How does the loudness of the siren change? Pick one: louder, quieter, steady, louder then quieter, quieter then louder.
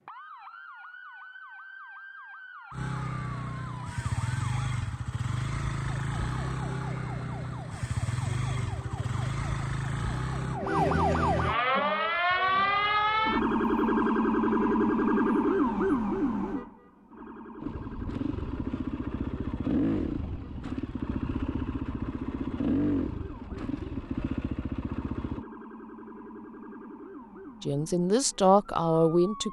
louder then quieter.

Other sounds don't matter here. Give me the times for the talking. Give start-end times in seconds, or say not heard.
27.6-29.4.